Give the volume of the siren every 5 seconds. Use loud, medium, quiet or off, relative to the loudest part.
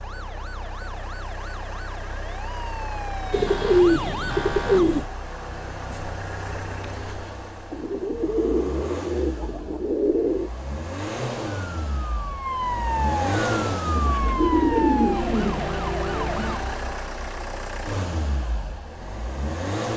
medium, off, loud, loud.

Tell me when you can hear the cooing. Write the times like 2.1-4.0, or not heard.
3.3-5.0, 7.7-10.5, 13.9-15.7.